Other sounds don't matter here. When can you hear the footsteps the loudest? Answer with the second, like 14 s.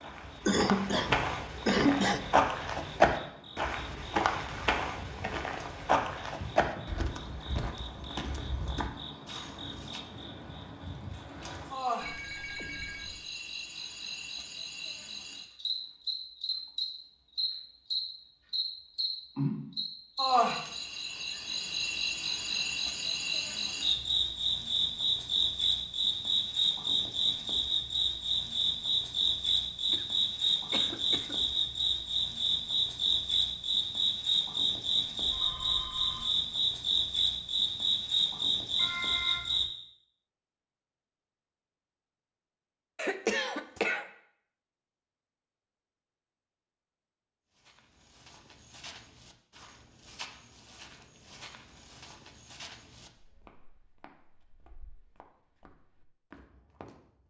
3 s.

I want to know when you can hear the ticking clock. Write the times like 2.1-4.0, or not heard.
not heard.